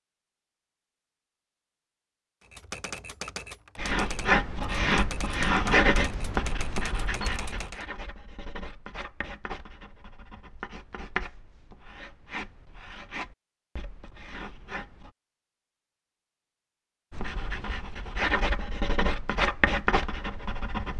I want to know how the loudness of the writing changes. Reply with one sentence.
The volume of the writing goes down, then up.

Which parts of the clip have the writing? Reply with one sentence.
You can hear the writing from 3.8 to 15.1 s and from 17.1 to 20.9 s.